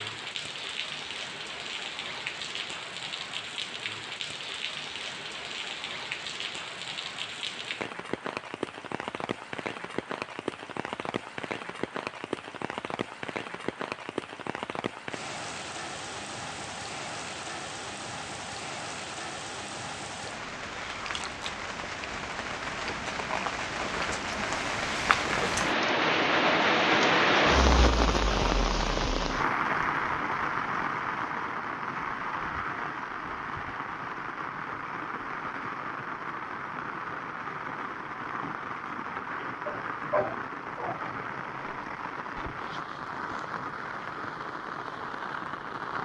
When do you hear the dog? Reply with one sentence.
The dog can be heard from 39.5 to 41.0 s.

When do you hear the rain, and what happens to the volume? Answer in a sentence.
The rain can be heard from 0.0 to 46.0 s, getting louder then quieter.